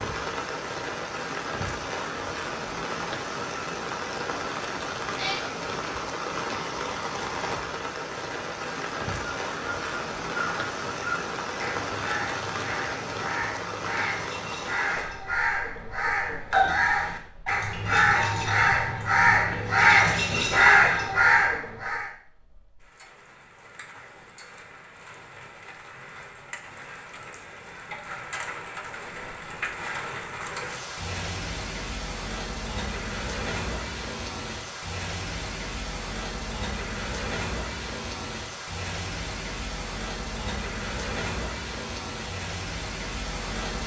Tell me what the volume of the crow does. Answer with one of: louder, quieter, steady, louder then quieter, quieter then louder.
louder.